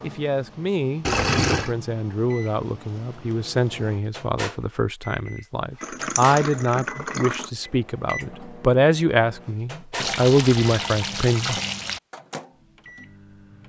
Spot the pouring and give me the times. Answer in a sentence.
You can hear the pouring from 1.1 to 1.8 s, from 5.8 to 7.5 s and from 10.0 to 12.0 s.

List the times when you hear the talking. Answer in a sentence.
The talking can be heard from 0.0 to 11.6 s.